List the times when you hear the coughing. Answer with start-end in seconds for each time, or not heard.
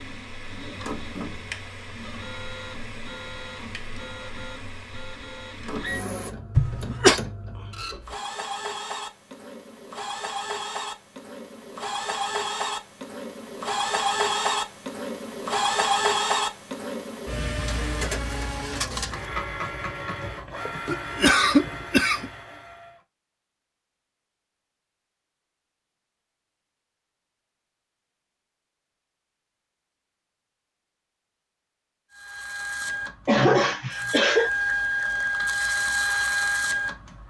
6.5-7.2, 20.9-22.3, 33.2-34.5.